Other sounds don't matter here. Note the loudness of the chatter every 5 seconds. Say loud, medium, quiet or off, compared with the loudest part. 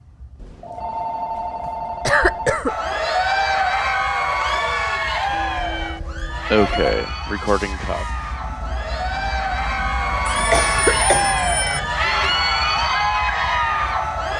loud, medium, loud.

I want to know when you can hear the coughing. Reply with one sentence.
You can hear the coughing from 2.0 to 2.8 s, from 6.5 to 8.1 s and from 10.5 to 11.5 s.